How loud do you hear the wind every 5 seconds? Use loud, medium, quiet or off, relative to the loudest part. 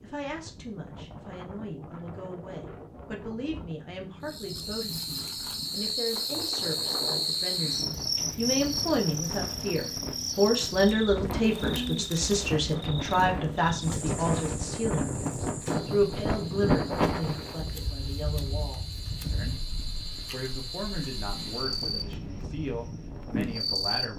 quiet, medium, loud, loud, medium.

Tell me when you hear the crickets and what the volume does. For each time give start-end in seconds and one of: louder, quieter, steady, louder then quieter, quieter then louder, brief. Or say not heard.
4.2-24.1 quieter then louder.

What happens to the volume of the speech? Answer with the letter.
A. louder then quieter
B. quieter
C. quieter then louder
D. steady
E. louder
A.